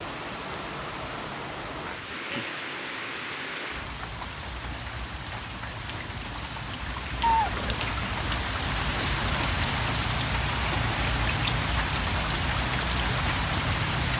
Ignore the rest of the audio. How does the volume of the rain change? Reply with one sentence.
The loudness of the rain goes up.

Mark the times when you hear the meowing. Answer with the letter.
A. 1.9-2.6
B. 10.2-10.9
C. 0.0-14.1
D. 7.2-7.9
D.